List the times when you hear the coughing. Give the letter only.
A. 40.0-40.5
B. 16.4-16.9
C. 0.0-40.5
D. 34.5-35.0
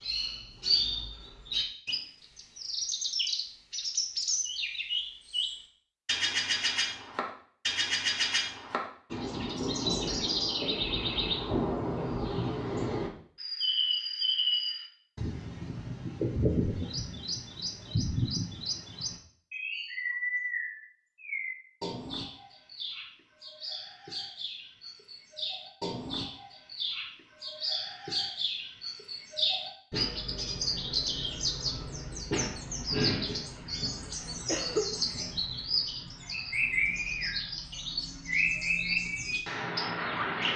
D.